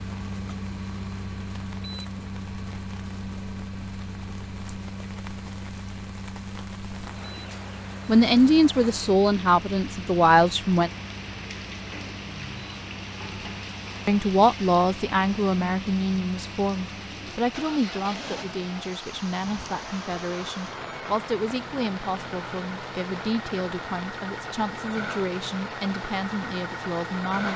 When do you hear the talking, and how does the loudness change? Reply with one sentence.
You can hear the talking briefly from 8.1 to 10.9 s; and from 14.1 to 27.5 s, getting quieter.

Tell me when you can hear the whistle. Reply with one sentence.
The whistle can't be heard in this clip.